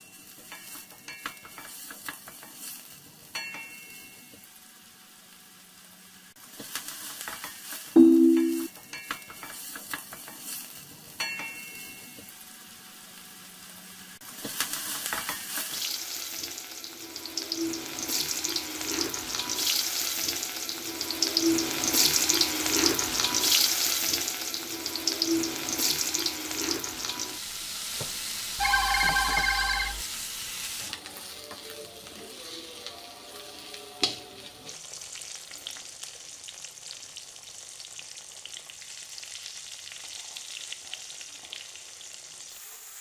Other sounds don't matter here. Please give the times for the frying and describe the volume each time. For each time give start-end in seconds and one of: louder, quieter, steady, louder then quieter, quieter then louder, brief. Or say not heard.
0.0-42.9 louder then quieter.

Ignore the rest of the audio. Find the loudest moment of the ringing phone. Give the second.
8 s.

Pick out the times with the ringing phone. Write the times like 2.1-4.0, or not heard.
8.0-8.7, 28.6-30.1.